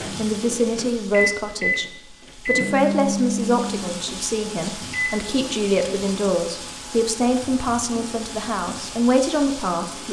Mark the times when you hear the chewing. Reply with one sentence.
You can't hear the chewing here.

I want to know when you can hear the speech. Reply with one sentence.
The speech can be heard from 0.1 to 10.0 s.